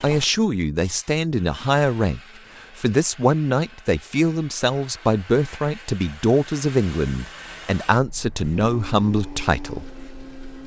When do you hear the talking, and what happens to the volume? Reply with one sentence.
You can hear the talking from 0.0 to 9.8 s, at a steady volume.